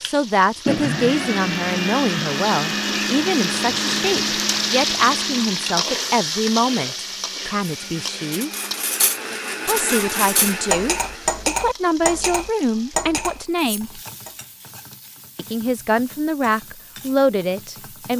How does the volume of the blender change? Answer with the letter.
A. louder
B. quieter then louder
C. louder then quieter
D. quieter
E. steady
B.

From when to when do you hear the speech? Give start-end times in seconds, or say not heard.
0.0-8.5, 9.7-14.0, 15.3-18.1.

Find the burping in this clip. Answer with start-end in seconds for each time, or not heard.
not heard.